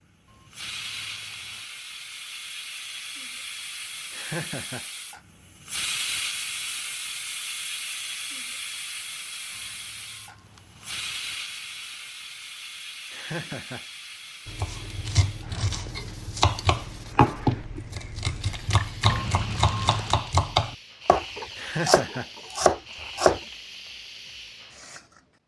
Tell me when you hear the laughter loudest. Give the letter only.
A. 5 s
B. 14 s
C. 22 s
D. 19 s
C.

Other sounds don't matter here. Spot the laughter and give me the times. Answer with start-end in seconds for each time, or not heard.
4.1-4.8, 13.1-13.8, 21.6-22.3.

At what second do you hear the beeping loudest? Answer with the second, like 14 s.
20 s.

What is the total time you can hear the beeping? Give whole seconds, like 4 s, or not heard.
4 s.